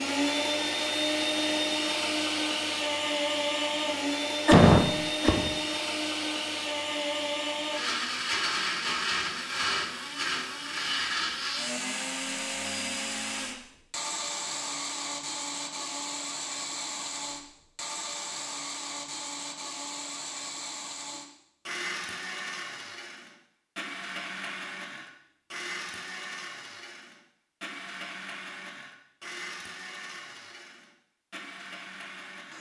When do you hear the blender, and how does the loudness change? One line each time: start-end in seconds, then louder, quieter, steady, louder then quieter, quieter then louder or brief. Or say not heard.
0.0-32.5 quieter.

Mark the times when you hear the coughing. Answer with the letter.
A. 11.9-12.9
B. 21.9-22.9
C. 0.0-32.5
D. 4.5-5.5
D.